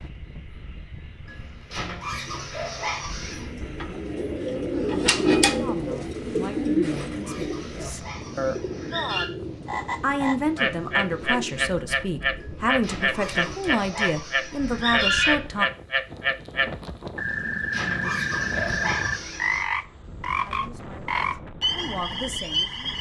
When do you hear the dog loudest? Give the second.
15 s.